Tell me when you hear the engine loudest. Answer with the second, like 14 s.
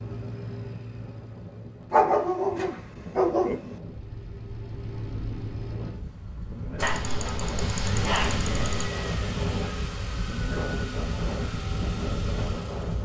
8 s.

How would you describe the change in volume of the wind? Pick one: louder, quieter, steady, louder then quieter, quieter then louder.
louder.